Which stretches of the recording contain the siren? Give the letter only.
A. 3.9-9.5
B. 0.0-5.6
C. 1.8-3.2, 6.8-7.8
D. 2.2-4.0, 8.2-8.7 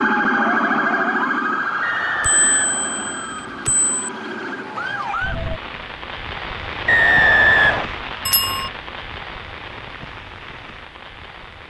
B.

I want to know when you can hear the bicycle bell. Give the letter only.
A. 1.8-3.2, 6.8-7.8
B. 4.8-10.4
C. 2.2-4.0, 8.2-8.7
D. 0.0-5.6
C.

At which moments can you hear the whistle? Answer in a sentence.
The whistle can be heard from 1.8 to 3.2 s and from 6.8 to 7.8 s.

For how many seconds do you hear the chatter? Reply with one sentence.
You can't hear the chatter here.